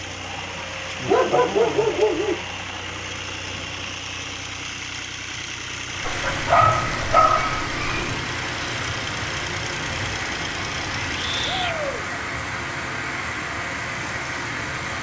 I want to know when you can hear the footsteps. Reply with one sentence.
You can't hear the footsteps here.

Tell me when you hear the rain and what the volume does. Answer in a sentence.
You can hear the rain from 5.8 to 14.9 s, at a steady volume.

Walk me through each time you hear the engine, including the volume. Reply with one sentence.
The engine can be heard from 0.0 to 11.6 s, at a steady volume.